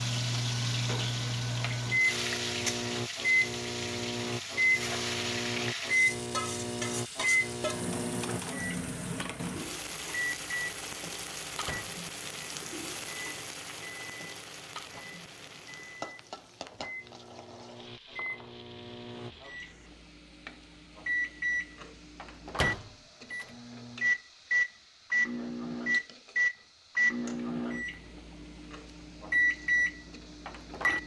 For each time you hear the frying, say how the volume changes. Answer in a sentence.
The frying can be heard from 0.0 to 31.0 s, getting quieter.